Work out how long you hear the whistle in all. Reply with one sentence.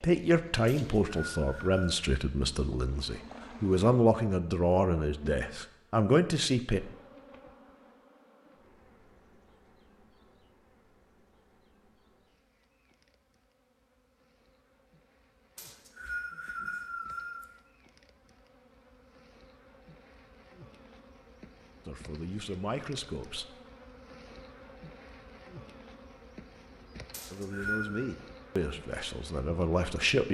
You can hear the whistle for 4 seconds altogether.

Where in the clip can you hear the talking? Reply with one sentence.
The talking can be heard from 0.0 to 6.8 s, from 21.9 to 23.4 s and from 27.3 to 30.3 s.